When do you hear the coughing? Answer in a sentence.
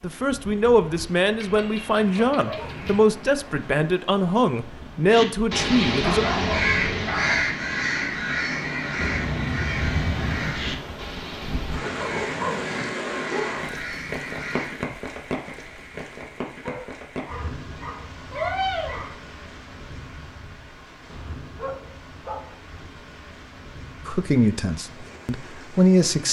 You can't hear the coughing here.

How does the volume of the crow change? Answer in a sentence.
The volume of the crow goes down.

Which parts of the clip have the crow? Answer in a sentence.
The crow can be heard from 5.1 to 14.8 s.